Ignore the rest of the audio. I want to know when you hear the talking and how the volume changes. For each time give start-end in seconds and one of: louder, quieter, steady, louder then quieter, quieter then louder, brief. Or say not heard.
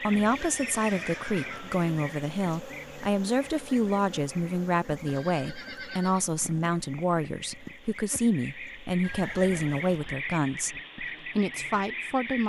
0.0-12.4 steady.